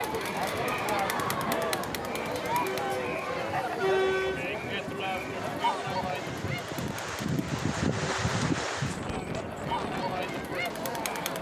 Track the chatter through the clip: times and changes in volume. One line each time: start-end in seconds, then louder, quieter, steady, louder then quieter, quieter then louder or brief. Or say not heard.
0.0-11.3 quieter then louder.